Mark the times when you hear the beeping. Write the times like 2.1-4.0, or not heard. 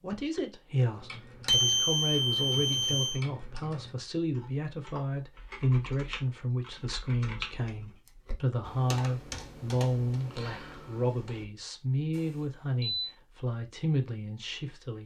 1.4-3.2, 12.1-13.1.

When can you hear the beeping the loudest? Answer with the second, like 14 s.
2 s.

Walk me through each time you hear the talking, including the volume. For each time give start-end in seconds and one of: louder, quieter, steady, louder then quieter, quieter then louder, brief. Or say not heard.
0.0-15.0 steady.